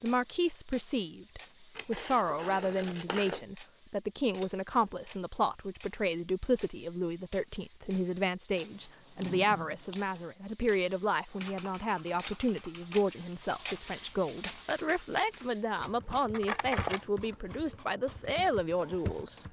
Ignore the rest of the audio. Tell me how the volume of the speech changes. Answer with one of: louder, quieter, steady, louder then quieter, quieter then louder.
steady.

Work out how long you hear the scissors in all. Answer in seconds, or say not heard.
4 s.